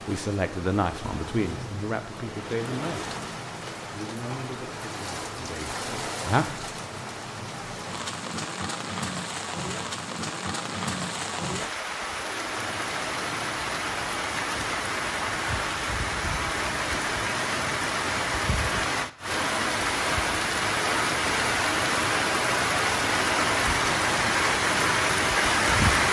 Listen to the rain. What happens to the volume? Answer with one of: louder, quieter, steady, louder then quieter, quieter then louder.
louder.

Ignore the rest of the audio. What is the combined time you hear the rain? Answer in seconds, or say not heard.
26 s.